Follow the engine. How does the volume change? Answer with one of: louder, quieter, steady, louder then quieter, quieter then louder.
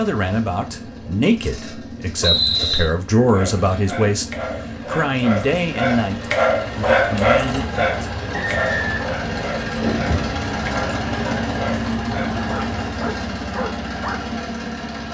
louder.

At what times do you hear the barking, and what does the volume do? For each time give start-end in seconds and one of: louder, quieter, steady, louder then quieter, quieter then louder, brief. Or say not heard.
3.1-14.2 louder then quieter.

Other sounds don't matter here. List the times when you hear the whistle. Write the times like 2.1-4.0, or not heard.
2.2-2.9, 8.3-9.1.